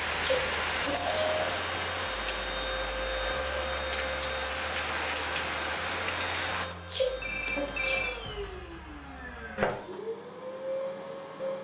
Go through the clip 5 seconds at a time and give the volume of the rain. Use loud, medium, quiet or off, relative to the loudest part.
loud, loud, off.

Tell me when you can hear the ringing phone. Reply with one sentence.
You can hear the ringing phone from 0.9 to 1.4 s and from 7.2 to 8.1 s.